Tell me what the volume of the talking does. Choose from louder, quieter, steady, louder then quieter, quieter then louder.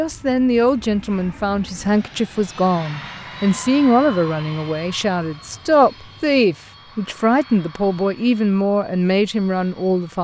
steady.